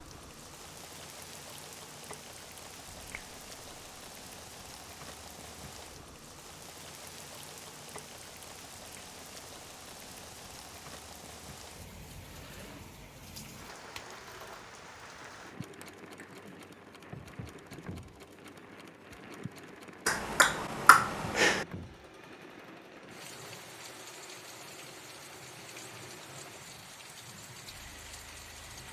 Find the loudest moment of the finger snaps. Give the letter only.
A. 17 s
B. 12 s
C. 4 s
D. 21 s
D.